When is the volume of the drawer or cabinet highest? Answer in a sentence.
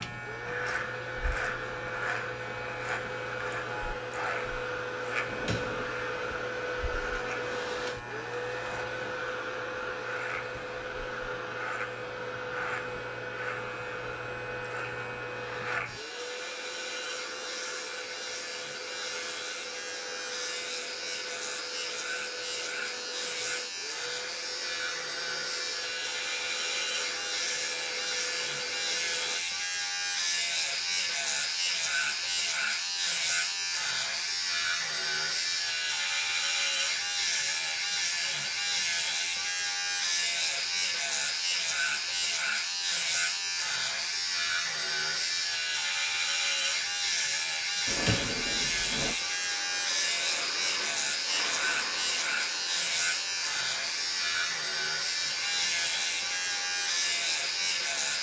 The loudest moment of the drawer or cabinet is at 48 seconds.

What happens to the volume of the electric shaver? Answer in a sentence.
The volume of the electric shaver goes up.